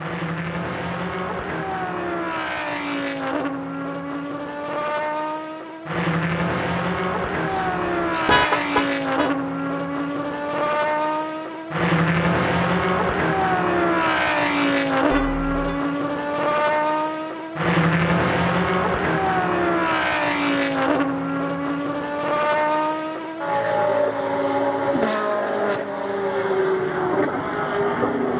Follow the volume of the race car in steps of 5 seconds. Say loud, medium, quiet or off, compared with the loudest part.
medium, loud, loud, loud, loud, loud.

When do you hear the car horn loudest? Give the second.
8 s.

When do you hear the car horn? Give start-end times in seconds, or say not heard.
7.5-9.3, 15.1-15.8.